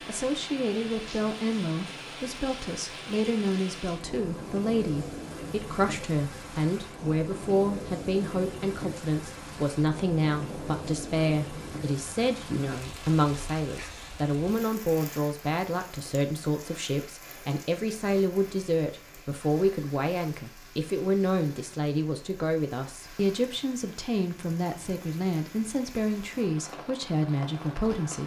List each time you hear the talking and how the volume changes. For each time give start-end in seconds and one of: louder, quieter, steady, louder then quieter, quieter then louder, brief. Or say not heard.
0.1-28.2 steady.